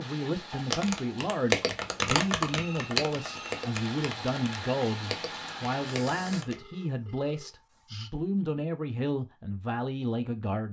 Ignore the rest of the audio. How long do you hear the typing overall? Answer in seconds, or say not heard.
6 s.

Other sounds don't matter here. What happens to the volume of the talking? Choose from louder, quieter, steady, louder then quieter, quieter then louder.
steady.